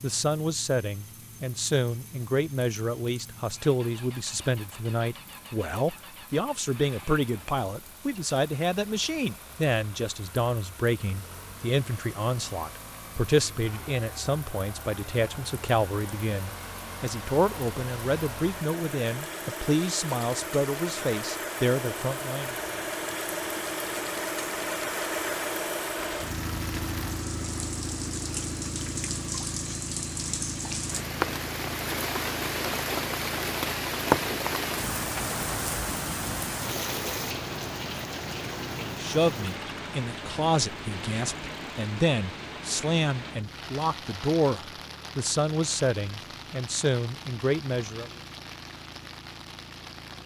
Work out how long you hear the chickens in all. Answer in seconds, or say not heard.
not heard.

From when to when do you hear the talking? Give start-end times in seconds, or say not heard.
0.0-22.6, 38.8-48.1.